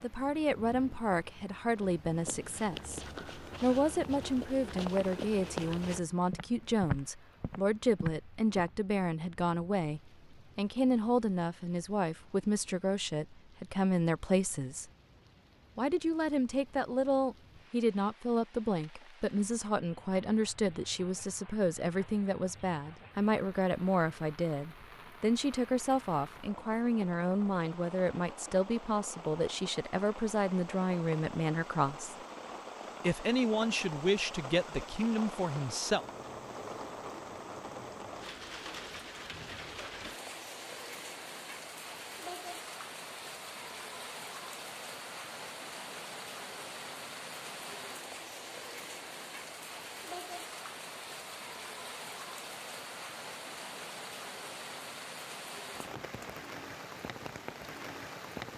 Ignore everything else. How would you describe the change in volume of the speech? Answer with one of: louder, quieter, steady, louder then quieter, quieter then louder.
steady.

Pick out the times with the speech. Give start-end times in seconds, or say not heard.
0.0-14.8, 15.8-32.1, 33.0-36.0.